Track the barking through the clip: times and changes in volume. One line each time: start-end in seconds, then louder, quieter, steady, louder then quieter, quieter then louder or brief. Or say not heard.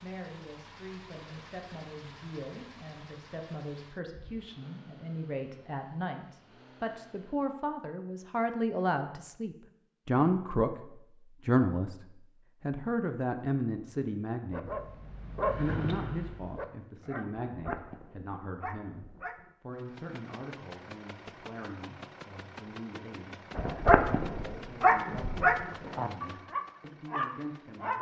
14.5-19.5 quieter
23.6-27.9 louder then quieter.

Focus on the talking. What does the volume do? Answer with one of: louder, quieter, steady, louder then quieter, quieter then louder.
louder then quieter.